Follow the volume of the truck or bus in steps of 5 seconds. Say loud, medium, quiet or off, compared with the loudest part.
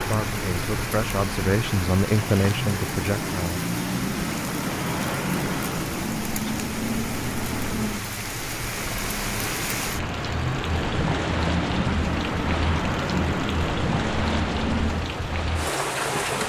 loud, loud, loud, off.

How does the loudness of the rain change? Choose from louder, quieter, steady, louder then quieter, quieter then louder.
louder.